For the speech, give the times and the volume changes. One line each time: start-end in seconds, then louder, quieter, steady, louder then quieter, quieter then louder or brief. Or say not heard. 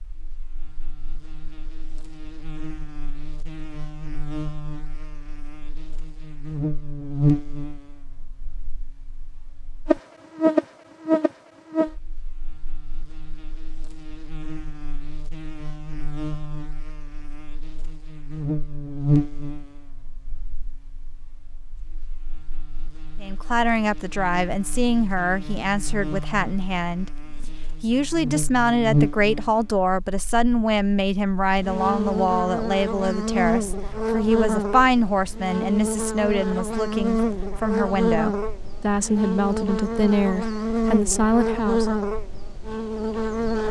23.2-42.0 steady.